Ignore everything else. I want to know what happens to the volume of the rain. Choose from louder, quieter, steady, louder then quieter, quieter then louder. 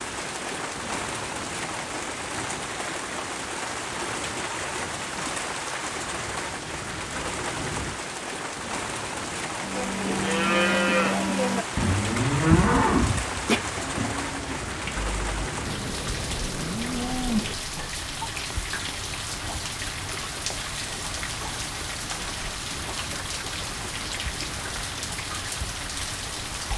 steady.